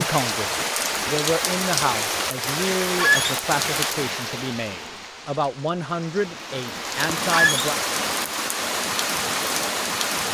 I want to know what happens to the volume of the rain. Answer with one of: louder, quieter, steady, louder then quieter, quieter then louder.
quieter then louder.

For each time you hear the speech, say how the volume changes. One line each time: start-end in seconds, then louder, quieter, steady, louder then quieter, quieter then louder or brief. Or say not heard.
0.0-7.8 steady.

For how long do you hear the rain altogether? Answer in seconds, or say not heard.
10 s.